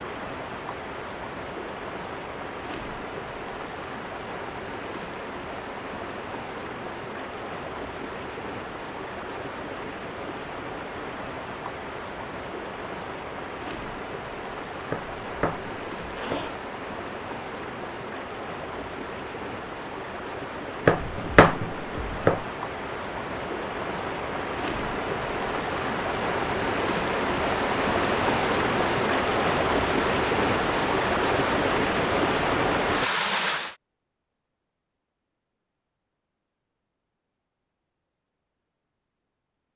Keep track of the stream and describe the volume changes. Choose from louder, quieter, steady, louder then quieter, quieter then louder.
louder.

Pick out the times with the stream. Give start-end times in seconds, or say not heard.
0.0-33.8.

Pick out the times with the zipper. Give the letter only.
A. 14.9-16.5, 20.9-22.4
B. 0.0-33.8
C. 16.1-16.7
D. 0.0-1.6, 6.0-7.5
C.